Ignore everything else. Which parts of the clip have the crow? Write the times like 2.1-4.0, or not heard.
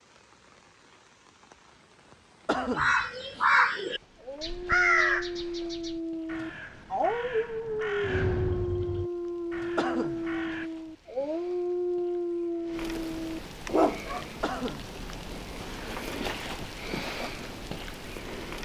2.5-10.7.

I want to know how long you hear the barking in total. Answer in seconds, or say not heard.
10 s.